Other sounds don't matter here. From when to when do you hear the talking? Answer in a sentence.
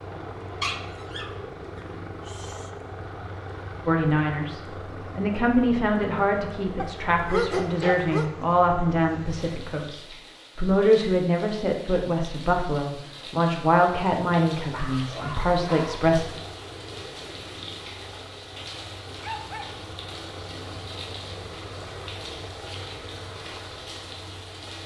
The talking can be heard from 3.9 to 16.2 s.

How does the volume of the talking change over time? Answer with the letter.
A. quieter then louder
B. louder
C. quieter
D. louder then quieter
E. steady
E.